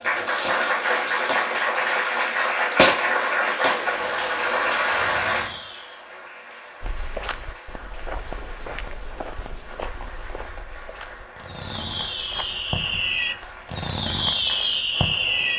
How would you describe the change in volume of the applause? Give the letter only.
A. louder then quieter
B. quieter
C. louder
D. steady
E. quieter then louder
B.